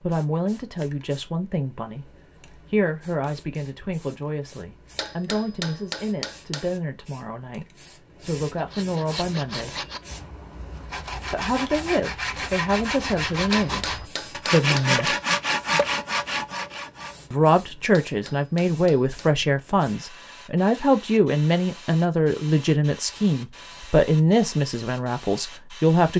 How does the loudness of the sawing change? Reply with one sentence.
The loudness of the sawing goes up.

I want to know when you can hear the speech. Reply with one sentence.
The speech can be heard from 0.0 to 9.8 s, from 11.3 to 15.2 s and from 17.3 to 26.1 s.